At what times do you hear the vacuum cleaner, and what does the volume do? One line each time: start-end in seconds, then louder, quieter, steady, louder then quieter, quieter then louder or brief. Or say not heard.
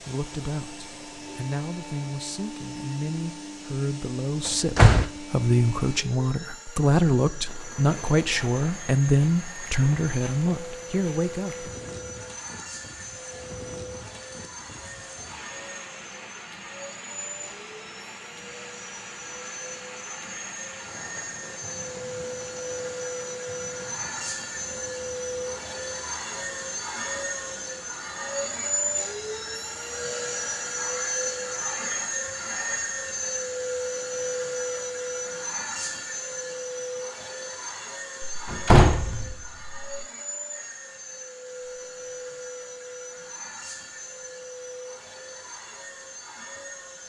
0.0-47.0 louder then quieter.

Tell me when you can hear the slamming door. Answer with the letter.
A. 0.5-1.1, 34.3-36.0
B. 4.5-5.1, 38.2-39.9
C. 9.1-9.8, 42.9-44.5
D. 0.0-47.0
B.